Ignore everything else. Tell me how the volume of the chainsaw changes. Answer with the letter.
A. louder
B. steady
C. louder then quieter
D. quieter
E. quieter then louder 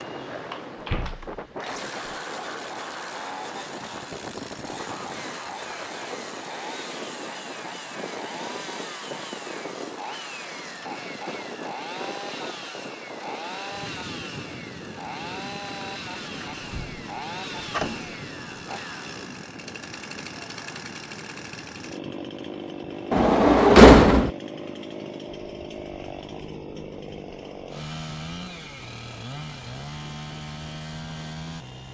B.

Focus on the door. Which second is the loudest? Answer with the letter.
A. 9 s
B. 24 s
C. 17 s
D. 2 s
B.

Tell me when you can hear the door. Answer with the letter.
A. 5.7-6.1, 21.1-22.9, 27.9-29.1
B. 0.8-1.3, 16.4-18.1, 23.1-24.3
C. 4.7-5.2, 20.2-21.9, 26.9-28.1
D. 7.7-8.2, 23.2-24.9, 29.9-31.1
B.